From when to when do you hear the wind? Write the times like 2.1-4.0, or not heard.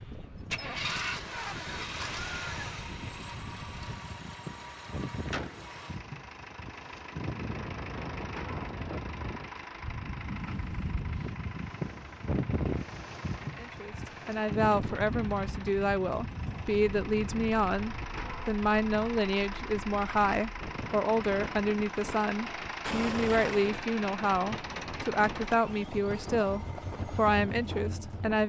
0.0-28.4.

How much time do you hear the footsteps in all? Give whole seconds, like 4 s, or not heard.
not heard.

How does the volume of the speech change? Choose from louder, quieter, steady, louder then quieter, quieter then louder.
steady.